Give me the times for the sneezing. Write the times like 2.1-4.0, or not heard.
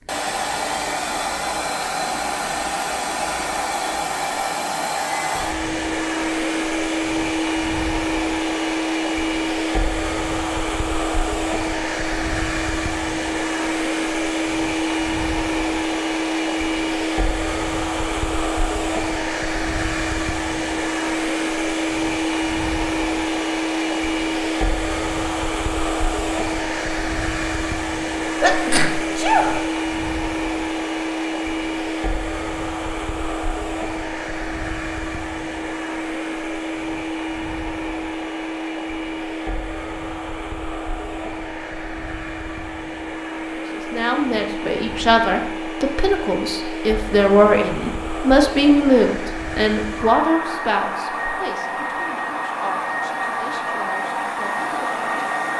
28.4-29.7.